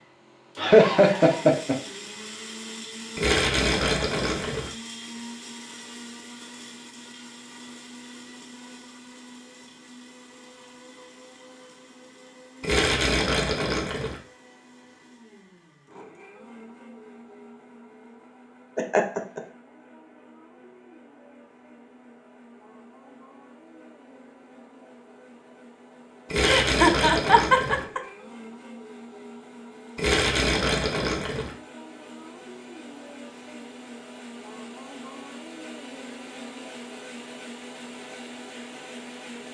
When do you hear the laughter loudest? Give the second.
1 s.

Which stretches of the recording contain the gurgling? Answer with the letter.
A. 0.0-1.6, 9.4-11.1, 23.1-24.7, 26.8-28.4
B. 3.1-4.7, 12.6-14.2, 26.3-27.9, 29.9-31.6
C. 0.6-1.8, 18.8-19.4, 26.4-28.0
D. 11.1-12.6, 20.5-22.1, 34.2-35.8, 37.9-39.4
B.